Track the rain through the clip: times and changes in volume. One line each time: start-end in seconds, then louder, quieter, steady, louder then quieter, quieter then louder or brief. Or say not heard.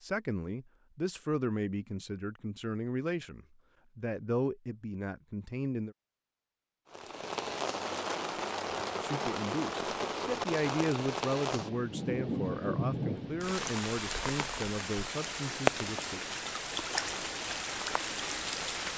6.9-18.9 steady.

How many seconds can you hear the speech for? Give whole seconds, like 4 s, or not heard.
13 s.